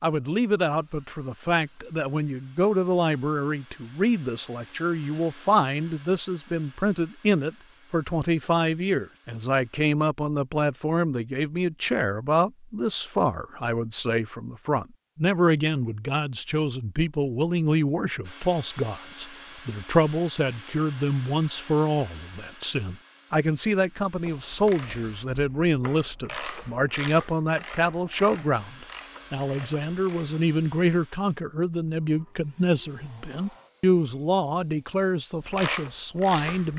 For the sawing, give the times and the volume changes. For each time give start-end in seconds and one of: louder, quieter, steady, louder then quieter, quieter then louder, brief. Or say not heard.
not heard.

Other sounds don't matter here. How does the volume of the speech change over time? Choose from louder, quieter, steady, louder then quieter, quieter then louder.
steady.